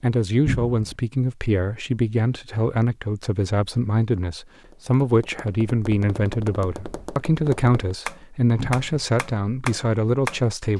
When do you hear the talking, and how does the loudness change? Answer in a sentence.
The talking can be heard from 0.0 to 10.7 s, at a steady volume.